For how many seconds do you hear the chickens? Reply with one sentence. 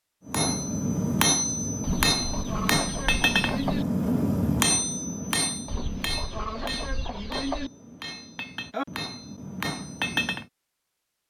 You can hear the chickens for 4 seconds altogether.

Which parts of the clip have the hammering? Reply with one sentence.
The hammering can be heard from 0.2 to 10.4 s.